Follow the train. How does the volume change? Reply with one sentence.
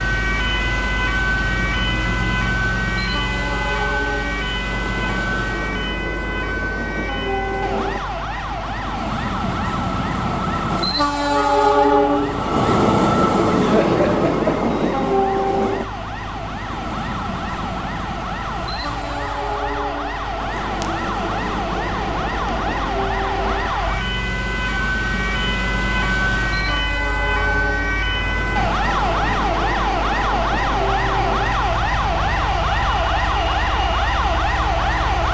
The volume of the train goes up, then down.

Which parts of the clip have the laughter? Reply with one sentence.
The laughter can be heard from 13.6 to 14.8 s.